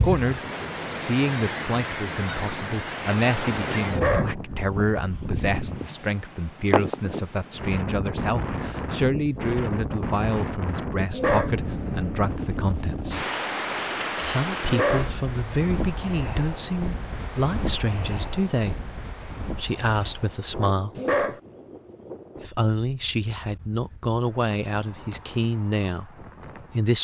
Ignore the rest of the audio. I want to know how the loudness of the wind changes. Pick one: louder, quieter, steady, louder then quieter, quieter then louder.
quieter.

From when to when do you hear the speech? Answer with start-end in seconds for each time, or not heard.
0.0-0.4, 1.0-13.2, 14.2-20.9, 22.4-26.9.